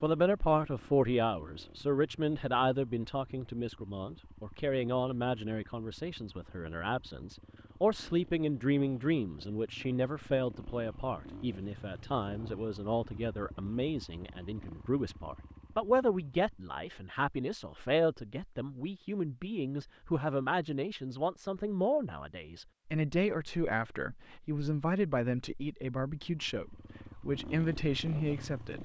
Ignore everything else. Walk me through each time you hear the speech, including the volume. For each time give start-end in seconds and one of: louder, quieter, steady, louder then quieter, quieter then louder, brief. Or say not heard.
0.0-28.8 steady.